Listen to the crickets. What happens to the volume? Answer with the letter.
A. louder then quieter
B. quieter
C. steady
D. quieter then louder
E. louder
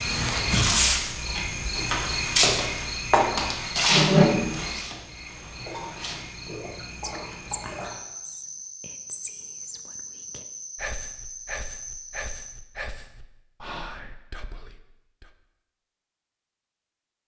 B.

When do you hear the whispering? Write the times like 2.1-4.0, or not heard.
7.0-15.2.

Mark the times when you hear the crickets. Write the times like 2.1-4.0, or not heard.
0.0-12.6.